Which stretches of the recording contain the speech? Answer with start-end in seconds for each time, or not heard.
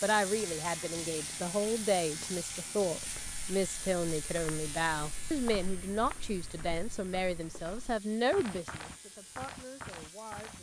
0.0-10.5.